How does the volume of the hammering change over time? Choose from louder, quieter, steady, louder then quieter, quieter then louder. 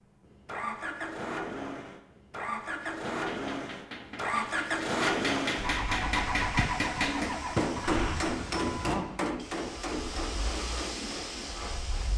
louder then quieter.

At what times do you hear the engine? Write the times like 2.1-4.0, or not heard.
0.2-12.1.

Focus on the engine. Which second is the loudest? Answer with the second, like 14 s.
5 s.